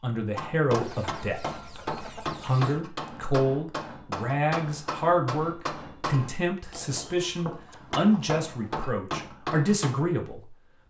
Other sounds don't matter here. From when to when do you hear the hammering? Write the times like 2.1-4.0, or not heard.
0.3-10.1.